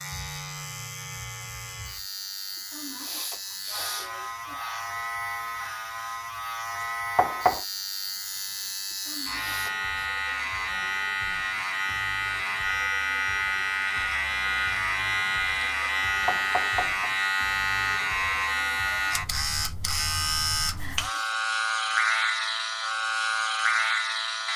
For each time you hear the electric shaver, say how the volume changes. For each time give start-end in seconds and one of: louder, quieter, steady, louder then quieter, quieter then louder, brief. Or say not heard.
0.0-24.5 louder.